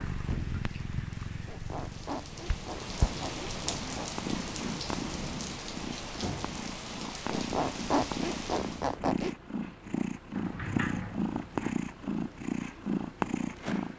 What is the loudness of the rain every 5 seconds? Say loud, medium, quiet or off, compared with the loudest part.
loud, loud, off.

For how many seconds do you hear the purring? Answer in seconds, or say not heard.
14 s.